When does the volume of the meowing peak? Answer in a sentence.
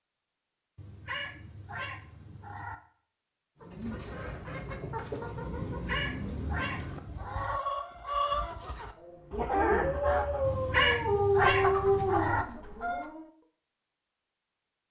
The volume of the meowing peaks at 11 seconds.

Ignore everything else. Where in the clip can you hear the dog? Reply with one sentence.
The dog can be heard from 8.9 to 13.3 s.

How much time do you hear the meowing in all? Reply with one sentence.
The meowing can be heard for 6 seconds in total.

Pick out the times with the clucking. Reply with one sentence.
The clucking can be heard from 3.6 to 13.1 s.